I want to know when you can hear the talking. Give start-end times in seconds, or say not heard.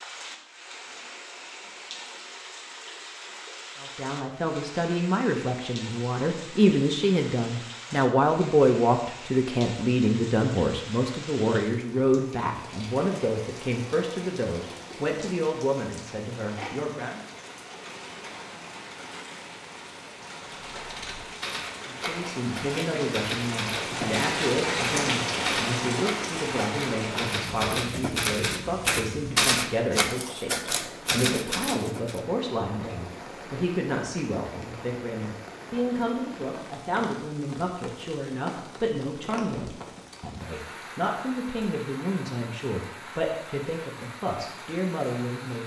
3.8-17.2, 21.9-45.6.